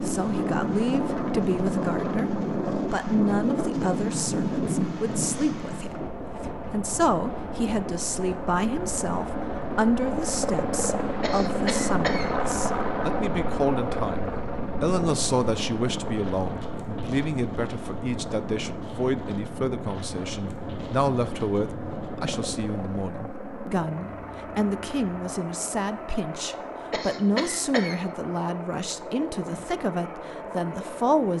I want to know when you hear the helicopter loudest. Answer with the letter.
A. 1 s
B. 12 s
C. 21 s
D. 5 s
B.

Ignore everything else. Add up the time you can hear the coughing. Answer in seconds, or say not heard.
2 s.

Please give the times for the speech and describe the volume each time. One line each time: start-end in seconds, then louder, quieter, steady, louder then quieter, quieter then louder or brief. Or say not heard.
0.0-31.3 steady.